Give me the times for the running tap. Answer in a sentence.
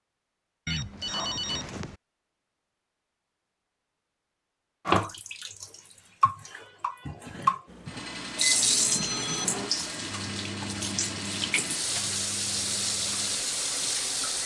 You can hear the running tap from 4.8 to 14.4 s.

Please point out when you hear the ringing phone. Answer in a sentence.
You can hear the ringing phone from 0.7 to 1.9 s and from 8.7 to 9.4 s.